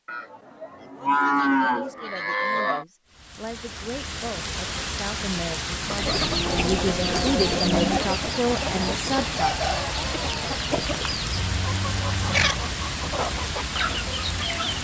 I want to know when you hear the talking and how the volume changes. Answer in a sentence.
The talking can be heard from 1.6 to 9.5 s, getting louder.